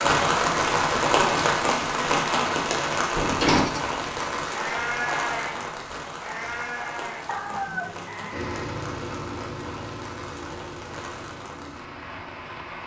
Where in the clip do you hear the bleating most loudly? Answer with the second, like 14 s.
5 s.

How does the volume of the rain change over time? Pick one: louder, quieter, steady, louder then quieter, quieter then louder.
quieter.